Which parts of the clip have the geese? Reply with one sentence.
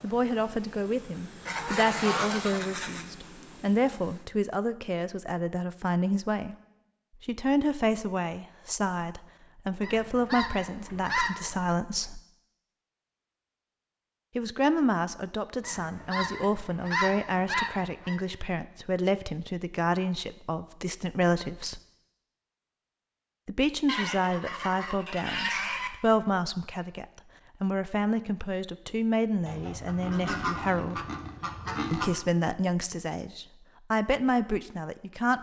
The geese can be heard from 1.4 to 3.0 s, from 9.8 to 11.8 s, from 15.6 to 18.1 s, from 23.9 to 25.9 s and from 29.4 to 32.2 s.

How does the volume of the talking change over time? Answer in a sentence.
The volume of the talking stays about the same.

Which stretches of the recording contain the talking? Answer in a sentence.
You can hear the talking from 0.0 to 6.5 s, from 7.2 to 12.2 s, from 14.3 to 21.8 s, from 23.4 to 31.1 s and from 31.9 to 35.3 s.